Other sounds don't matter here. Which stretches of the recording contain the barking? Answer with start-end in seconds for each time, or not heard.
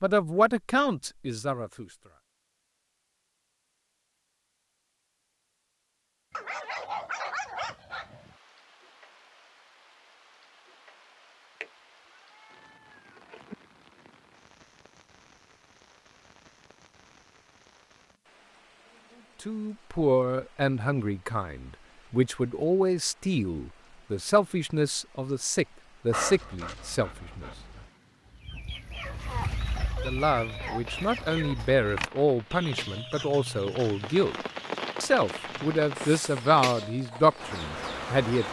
6.3-8.3, 26.1-27.9.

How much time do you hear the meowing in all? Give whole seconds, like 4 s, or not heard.
2 s.